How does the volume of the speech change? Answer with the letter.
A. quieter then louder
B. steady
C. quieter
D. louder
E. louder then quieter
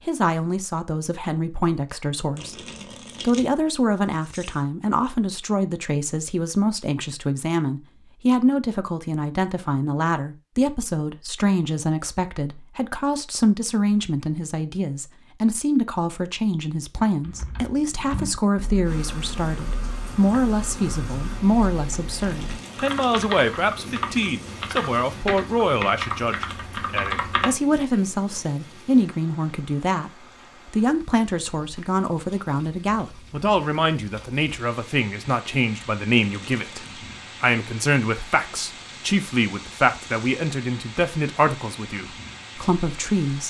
B.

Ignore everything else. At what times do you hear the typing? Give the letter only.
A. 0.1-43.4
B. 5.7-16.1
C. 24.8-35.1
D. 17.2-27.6
D.